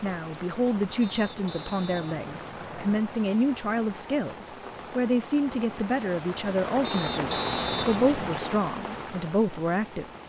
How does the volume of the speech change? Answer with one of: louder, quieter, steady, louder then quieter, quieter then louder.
steady.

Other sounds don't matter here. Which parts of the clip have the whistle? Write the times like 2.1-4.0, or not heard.
1.0-3.0, 6.8-8.4.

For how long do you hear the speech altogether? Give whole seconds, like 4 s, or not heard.
10 s.